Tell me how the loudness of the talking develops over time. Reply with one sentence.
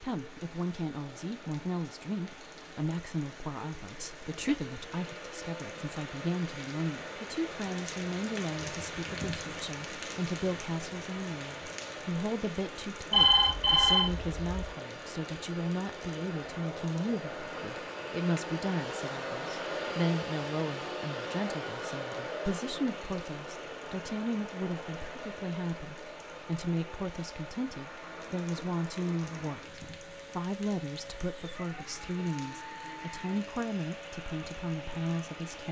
The loudness of the talking stays about the same.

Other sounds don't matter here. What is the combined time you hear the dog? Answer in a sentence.
The dog can't be heard in this clip.